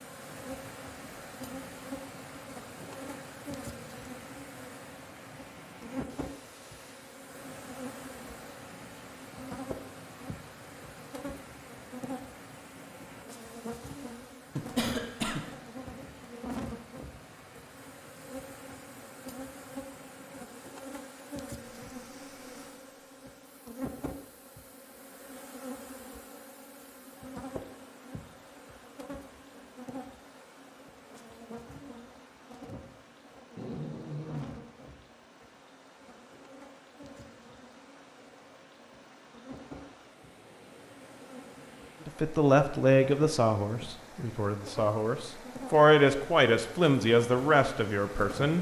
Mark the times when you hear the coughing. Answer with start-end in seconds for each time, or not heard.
14.6-15.4.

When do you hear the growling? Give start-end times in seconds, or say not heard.
33.5-34.7.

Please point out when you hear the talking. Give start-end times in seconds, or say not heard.
42.0-48.5.